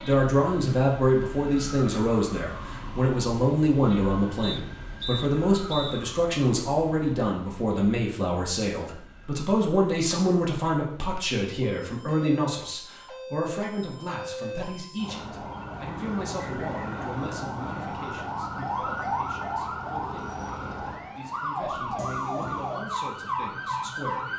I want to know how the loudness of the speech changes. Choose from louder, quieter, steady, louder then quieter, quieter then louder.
quieter.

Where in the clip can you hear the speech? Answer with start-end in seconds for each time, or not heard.
0.1-24.3.